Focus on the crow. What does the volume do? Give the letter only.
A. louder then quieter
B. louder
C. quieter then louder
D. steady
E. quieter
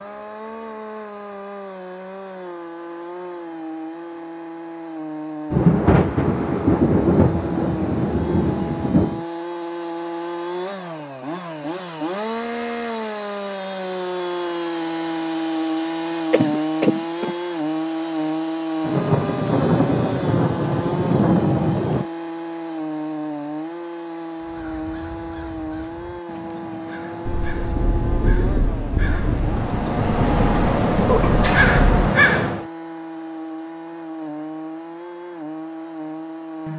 B.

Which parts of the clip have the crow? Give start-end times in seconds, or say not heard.
24.4-32.6.